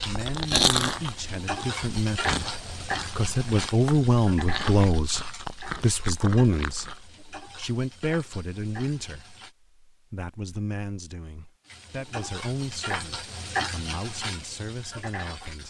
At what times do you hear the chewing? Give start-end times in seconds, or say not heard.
0.0-7.0.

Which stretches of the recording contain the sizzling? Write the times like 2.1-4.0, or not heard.
0.0-9.6, 11.7-15.6.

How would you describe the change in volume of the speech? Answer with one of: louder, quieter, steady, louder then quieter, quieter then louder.
louder then quieter.